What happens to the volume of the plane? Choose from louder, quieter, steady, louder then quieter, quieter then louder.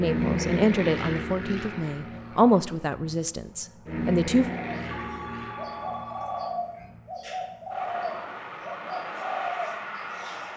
quieter then louder.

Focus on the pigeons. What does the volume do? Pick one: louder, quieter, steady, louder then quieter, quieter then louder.
louder.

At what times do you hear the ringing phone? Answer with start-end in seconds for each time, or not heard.
4.9-6.7.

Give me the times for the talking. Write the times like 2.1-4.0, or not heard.
0.0-4.5.